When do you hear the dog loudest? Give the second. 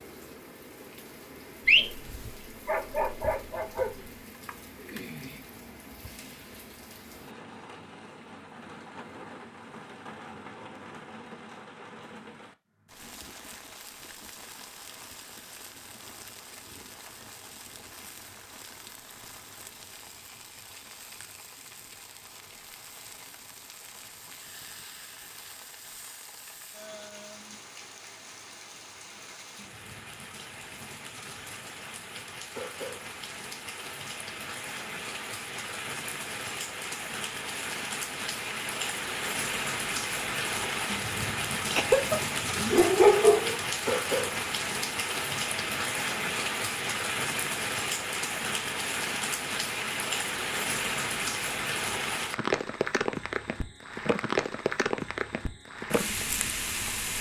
43 s.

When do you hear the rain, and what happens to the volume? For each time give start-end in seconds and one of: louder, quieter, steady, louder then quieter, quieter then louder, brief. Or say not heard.
0.0-57.1 louder.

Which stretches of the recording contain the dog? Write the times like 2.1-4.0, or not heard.
1.6-3.9, 41.8-43.6.